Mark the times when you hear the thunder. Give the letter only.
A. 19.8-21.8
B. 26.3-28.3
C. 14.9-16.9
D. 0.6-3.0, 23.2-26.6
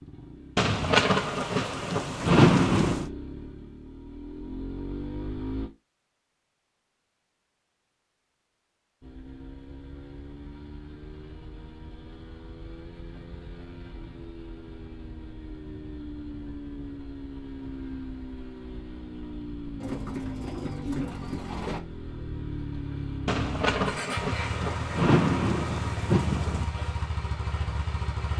D.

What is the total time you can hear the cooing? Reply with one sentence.
The cooing can be heard for 2 seconds in total.